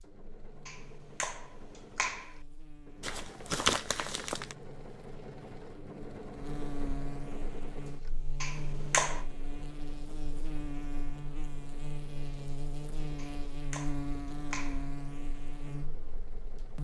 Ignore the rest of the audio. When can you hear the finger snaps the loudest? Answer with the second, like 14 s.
9 s.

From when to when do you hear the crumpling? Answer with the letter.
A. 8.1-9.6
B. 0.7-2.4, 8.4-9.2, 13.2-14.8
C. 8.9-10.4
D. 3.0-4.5
D.